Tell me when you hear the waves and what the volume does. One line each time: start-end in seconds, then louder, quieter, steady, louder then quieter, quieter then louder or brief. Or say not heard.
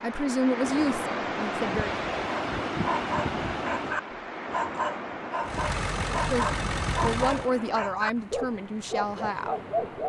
0.0-10.0 quieter.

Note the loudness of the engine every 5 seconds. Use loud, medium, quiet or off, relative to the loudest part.
off, loud.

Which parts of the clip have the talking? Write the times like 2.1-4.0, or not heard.
0.0-2.0, 6.2-9.6.